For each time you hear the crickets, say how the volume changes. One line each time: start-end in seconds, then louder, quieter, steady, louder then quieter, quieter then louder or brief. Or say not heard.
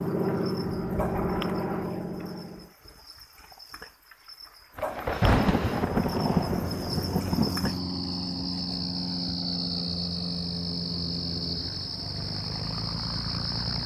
0.0-13.8 louder.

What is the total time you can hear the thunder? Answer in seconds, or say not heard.
3 s.